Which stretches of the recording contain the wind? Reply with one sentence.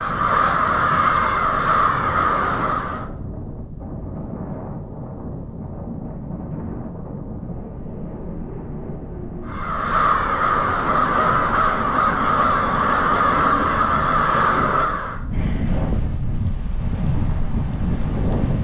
You can hear the wind from 0.0 to 18.6 s.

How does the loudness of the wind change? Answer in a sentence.
The loudness of the wind goes up.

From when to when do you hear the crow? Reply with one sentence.
The crow can be heard from 0.0 to 3.1 s and from 9.4 to 15.3 s.